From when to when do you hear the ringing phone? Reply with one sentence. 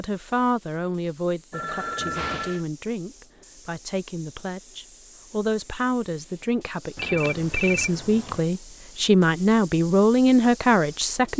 The ringing phone can be heard from 1.5 to 2.6 s and from 7.0 to 8.4 s.